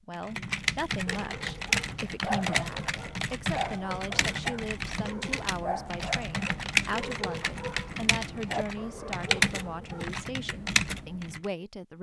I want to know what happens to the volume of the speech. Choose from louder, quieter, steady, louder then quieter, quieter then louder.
steady.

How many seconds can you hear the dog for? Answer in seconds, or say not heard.
9 s.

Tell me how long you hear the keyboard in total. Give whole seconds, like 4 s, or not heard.
11 s.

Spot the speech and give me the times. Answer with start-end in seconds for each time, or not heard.
0.1-11.9.